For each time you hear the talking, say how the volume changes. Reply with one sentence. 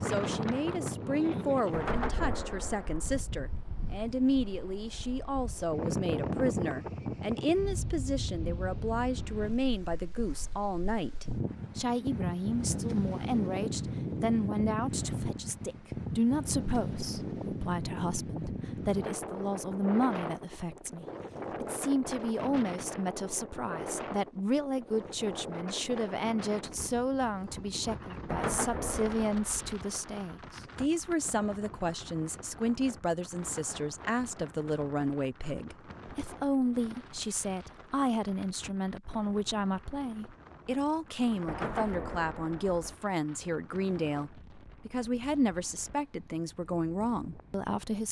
The talking can be heard from 0.0 to 48.0 s, at a steady volume.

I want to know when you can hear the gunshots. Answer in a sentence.
The gunshots can be heard from 1.7 to 3.2 s, from 28.2 to 29.8 s and from 41.5 to 43.0 s.